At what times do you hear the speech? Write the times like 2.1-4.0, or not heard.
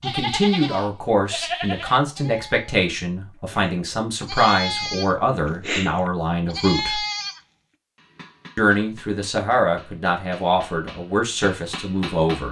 0.0-7.0, 8.6-12.4.